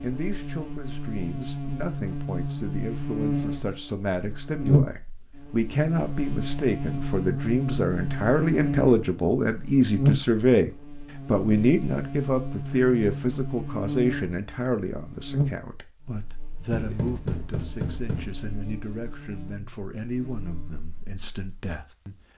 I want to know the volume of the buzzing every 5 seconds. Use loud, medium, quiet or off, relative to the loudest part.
loud, loud, loud, medium, quiet.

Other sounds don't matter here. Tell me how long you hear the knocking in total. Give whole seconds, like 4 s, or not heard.
2 s.